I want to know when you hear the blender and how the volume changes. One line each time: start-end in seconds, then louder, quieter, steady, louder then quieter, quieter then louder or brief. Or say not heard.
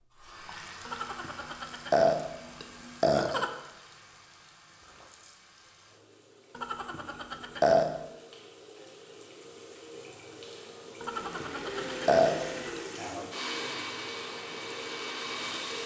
11.1-15.8 steady.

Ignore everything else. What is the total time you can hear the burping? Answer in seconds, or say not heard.
6 s.